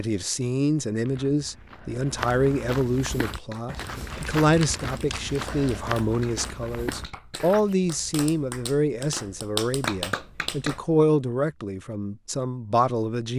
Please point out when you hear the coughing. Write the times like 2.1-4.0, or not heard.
not heard.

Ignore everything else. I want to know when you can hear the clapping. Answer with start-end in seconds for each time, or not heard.
3.1-10.8.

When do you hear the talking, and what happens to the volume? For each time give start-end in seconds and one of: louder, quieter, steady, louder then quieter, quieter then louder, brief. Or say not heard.
0.0-13.3 steady.